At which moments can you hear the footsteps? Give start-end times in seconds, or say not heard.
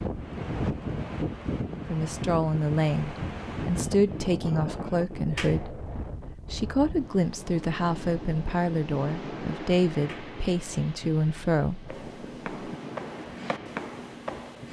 11.8-14.6.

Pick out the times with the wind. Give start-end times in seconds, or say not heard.
0.0-14.6.